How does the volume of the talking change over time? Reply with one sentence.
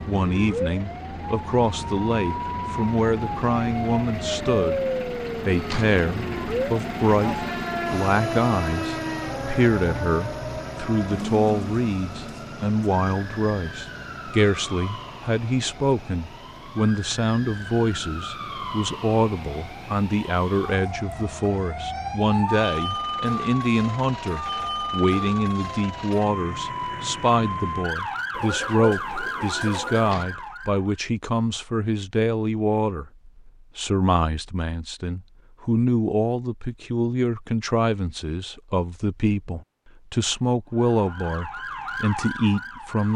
The volume of the talking stays about the same.